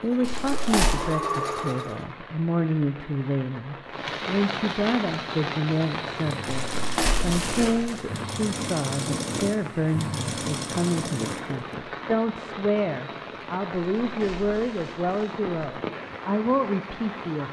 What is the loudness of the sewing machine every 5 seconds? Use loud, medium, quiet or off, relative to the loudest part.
loud, loud, loud, off.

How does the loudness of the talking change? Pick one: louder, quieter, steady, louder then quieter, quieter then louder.
steady.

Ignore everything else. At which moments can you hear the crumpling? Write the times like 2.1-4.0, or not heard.
0.2-1.0, 6.5-8.0, 13.8-15.4.